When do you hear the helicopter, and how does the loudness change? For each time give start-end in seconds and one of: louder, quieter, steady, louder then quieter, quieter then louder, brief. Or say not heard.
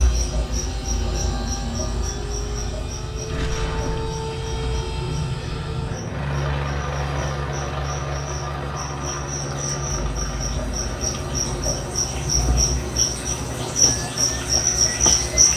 0.0-15.5 louder then quieter.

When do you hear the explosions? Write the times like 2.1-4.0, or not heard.
3.2-4.2.